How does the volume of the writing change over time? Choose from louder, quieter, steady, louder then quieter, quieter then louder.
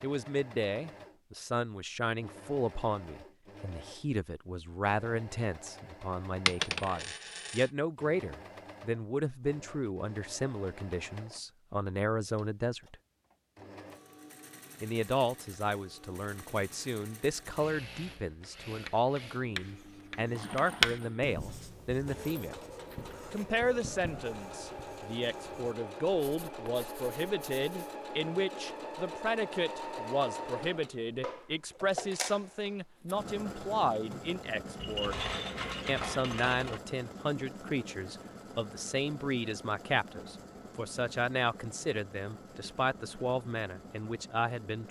louder then quieter.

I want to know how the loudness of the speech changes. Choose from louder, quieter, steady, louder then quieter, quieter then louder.
steady.